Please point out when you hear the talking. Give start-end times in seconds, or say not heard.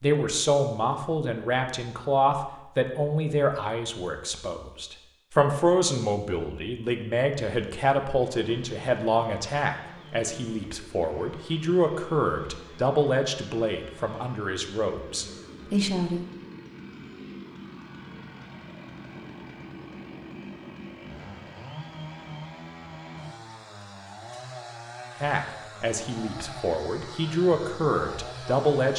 0.0-16.2, 25.2-28.9.